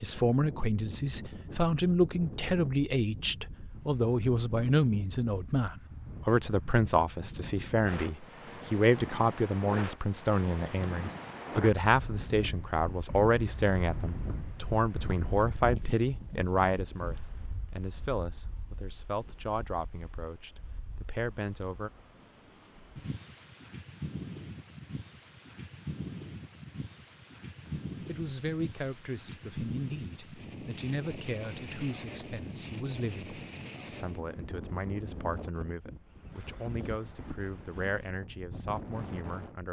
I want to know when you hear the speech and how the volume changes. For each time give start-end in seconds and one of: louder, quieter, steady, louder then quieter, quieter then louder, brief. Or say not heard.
0.0-21.9 quieter
27.6-39.6 steady.